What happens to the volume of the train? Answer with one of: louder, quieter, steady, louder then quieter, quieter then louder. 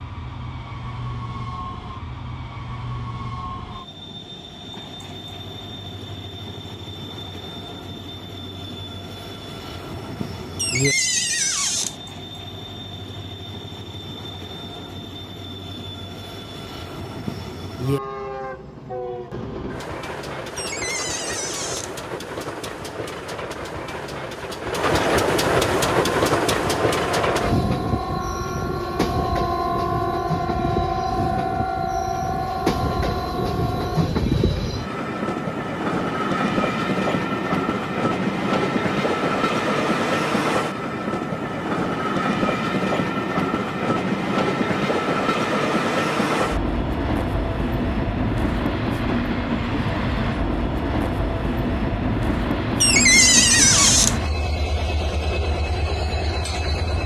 louder.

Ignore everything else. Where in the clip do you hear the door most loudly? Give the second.
53 s.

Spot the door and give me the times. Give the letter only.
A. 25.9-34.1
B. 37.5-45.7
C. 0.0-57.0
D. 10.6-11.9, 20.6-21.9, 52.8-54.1
D.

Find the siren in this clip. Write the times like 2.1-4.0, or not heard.
25.9-34.1.